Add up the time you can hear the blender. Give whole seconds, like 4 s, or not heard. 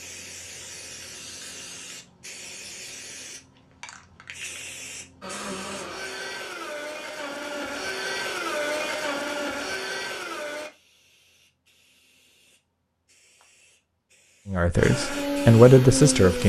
7 s.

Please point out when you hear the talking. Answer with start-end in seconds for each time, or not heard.
14.4-16.4.